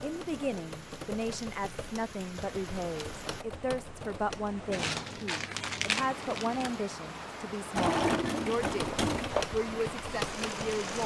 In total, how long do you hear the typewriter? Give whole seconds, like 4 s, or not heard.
7 s.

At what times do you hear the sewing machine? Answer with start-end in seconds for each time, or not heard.
7.8-11.0.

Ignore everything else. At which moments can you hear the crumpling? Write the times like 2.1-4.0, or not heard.
4.7-6.7.